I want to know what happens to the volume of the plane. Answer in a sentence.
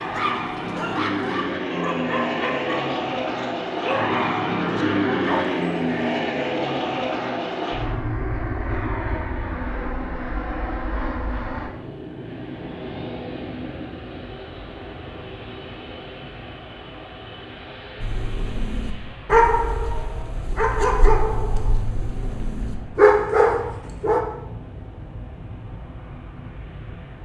The volume of the plane goes down.